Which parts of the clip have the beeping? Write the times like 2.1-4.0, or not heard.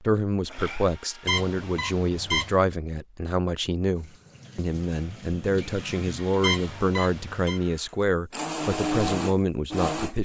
1.2-2.6, 6.4-7.6.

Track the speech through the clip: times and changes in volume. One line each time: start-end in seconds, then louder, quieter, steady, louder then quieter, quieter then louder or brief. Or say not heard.
0.0-10.1 steady.